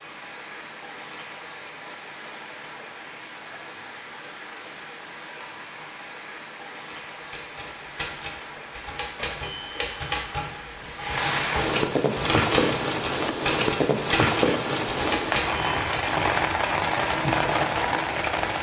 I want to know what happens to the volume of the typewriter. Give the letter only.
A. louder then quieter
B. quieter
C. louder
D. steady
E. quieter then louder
C.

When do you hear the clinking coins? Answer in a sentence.
You can't hear the clinking coins here.